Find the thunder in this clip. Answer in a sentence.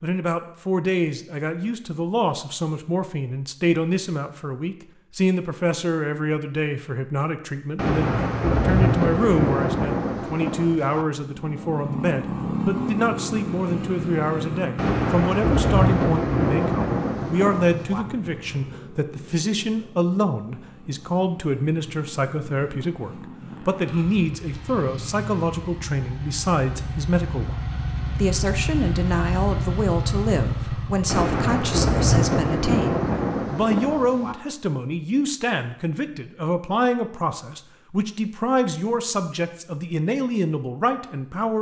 The thunder can be heard from 7.8 to 11.1 s, from 14.8 to 18.1 s and from 31.1 to 34.4 s.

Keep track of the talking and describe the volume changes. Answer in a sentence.
The volume of the talking stays about the same.